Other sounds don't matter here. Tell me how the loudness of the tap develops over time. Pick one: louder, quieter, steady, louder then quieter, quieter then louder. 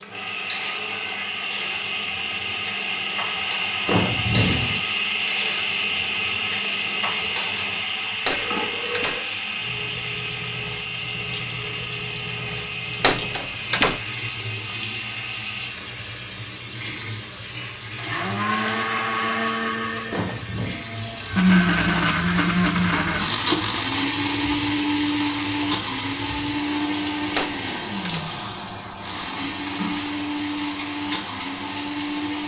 steady.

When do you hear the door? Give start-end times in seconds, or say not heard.
8.2-9.2, 13.0-14.0, 27.4-28.2.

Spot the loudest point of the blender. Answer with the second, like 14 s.
22 s.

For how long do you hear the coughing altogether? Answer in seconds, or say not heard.
2 s.